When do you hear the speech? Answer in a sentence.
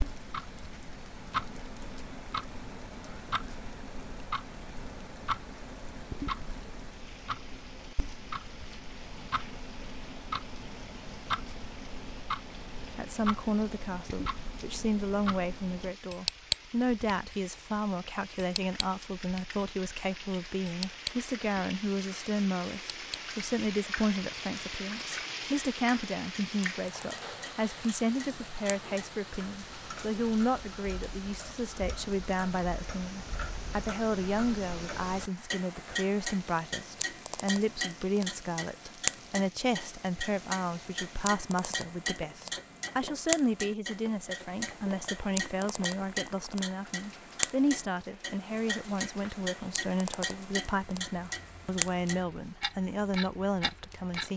The speech can be heard from 12.9 to 54.3 s.